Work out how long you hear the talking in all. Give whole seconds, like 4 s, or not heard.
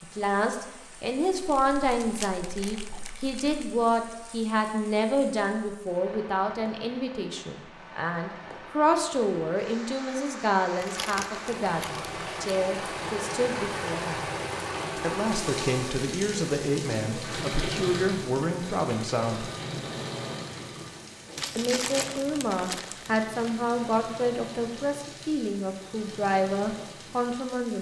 25 s.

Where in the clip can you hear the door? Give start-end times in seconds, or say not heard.
not heard.